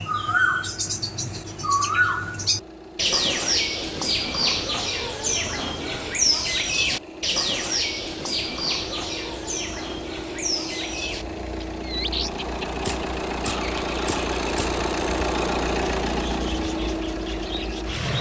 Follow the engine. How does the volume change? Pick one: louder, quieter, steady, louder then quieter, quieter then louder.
louder.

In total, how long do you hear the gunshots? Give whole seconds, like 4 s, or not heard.
2 s.